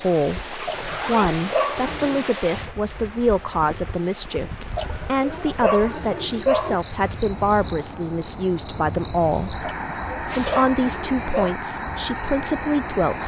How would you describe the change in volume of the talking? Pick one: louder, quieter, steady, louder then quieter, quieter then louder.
steady.